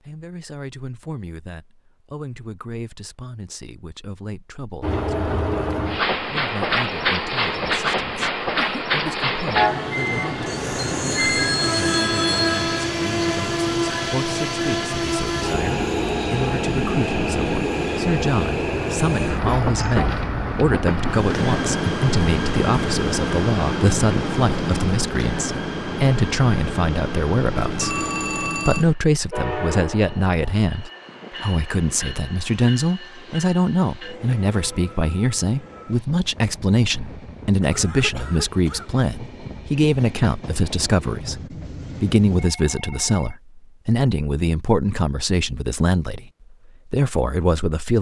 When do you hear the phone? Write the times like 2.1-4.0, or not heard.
11.2-12.9, 27.6-28.9, 42.4-43.4.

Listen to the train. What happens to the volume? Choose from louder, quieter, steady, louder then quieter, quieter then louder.
quieter.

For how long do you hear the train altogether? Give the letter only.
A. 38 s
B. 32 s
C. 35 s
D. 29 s
A.